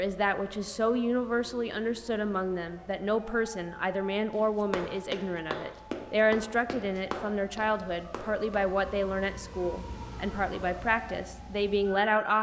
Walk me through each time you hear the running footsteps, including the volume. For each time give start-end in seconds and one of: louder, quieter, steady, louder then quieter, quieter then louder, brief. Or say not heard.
4.3-8.6 quieter.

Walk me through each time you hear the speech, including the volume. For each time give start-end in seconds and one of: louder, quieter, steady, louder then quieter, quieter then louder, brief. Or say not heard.
0.0-12.3 steady.